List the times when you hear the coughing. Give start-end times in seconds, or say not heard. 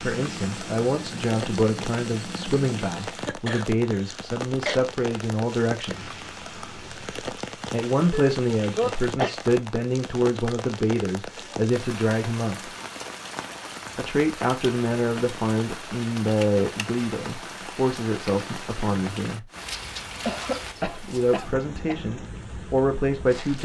3.2-4.8, 8.1-9.3, 20.2-22.0.